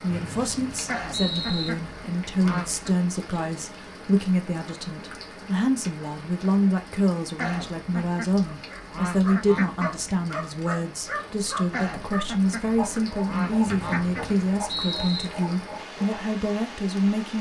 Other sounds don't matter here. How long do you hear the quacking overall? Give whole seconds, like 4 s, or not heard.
7 s.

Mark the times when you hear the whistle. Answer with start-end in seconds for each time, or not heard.
0.1-1.7, 13.7-15.2.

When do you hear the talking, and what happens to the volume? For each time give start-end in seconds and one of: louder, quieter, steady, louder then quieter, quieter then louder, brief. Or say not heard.
0.0-17.3 steady.